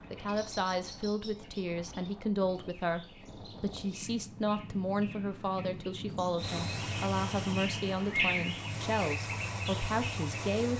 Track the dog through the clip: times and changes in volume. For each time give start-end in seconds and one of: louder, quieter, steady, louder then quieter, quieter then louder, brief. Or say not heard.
not heard.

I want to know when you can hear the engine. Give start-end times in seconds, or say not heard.
6.3-10.7.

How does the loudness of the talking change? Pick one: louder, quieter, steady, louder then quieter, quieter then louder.
steady.